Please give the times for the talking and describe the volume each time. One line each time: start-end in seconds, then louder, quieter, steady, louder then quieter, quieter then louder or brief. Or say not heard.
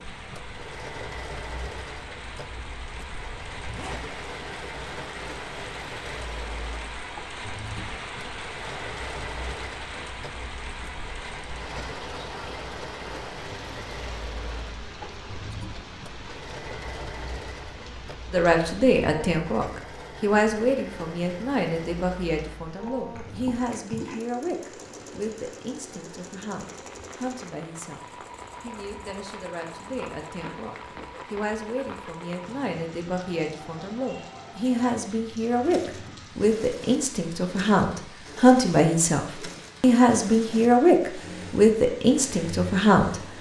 18.3-43.2 quieter then louder.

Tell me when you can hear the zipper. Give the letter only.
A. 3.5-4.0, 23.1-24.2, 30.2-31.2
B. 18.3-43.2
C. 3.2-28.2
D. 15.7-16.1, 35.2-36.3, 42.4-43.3
A.